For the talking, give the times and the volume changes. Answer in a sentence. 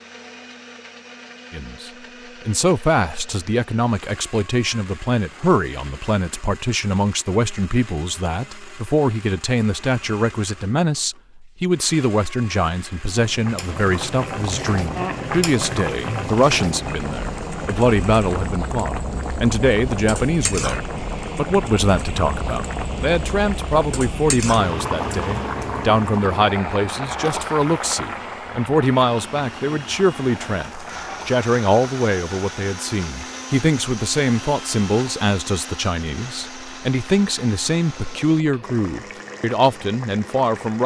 You can hear the talking from 1.5 to 40.8 s, at a steady volume.